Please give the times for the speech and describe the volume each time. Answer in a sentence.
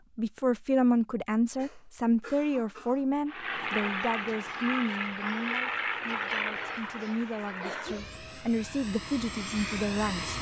The speech can be heard from 0.1 to 10.3 s, getting quieter then louder.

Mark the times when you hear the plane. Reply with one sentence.
The plane can be heard from 3.2 to 10.3 s.